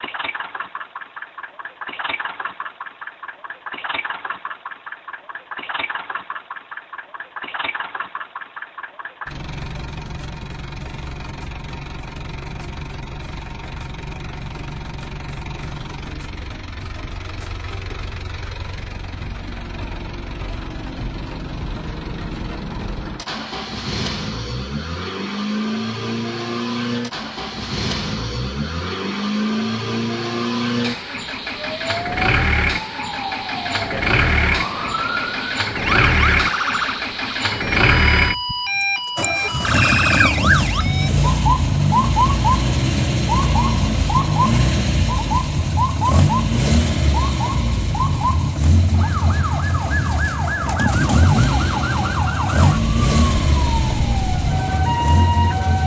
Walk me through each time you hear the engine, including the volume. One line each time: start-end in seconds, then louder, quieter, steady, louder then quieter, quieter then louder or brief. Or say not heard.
0.0-55.8 louder.